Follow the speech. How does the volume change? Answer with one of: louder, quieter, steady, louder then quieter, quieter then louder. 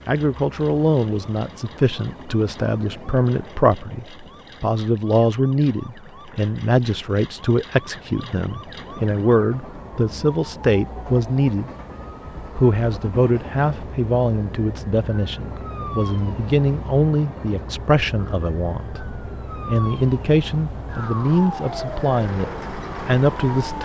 steady.